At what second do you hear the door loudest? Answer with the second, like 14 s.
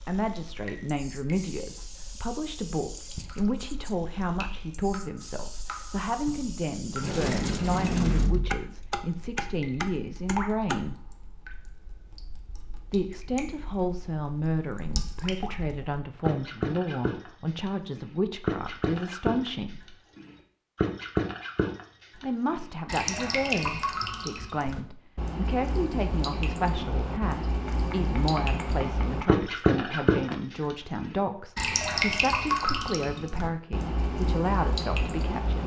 8 s.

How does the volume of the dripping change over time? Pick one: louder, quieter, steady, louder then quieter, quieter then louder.
louder.